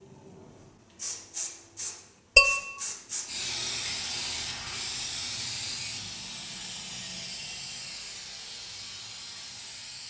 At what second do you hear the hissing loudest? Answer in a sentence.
The loudest moment of the hissing is at 4 seconds.